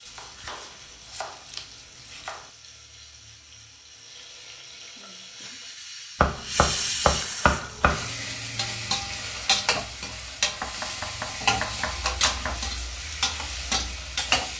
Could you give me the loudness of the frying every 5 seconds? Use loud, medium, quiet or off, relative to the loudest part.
quiet, loud, loud.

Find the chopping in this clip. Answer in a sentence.
You can hear the chopping from 0.1 to 2.5 s, from 6.2 to 8.2 s and from 10.4 to 12.6 s.